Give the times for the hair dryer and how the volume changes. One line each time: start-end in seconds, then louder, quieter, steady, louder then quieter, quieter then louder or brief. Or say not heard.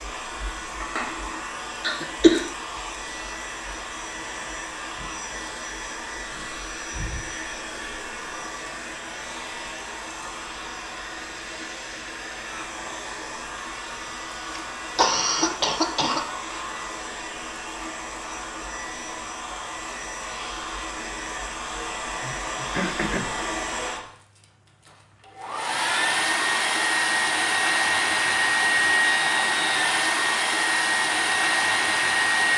0.0-32.5 louder.